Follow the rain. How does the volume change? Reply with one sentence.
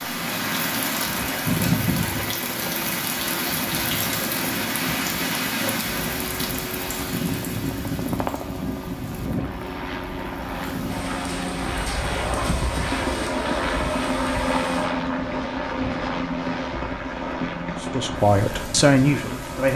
The volume of the rain goes down.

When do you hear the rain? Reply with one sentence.
The rain can be heard from 0.0 to 19.7 s.